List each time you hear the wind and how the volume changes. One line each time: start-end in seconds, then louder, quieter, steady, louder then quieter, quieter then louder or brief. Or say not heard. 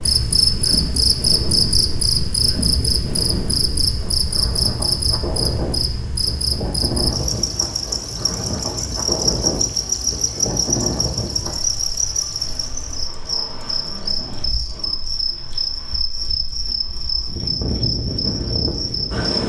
0.0-19.4 quieter then louder.